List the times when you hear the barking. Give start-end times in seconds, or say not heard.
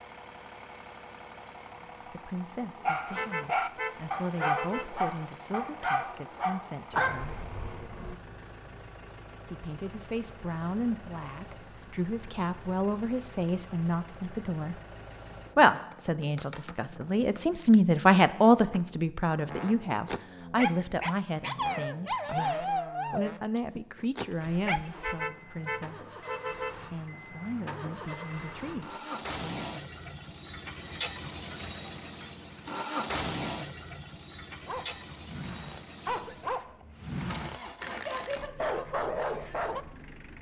2.8-8.2, 19.9-24.8, 34.6-39.9.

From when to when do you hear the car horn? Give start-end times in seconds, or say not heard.
3.1-4.9, 24.9-26.8.